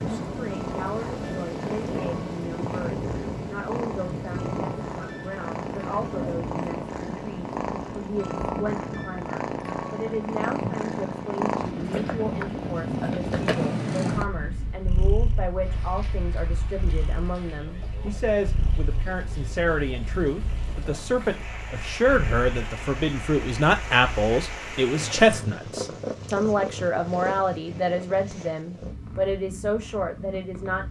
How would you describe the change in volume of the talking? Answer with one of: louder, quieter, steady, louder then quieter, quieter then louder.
louder.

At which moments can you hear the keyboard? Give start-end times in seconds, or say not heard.
not heard.